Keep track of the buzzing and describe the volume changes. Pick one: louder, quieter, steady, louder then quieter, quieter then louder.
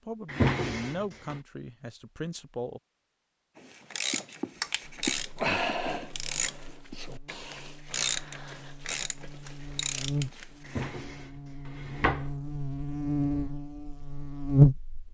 louder.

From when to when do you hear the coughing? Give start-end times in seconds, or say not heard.
not heard.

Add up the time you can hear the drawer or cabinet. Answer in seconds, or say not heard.
3 s.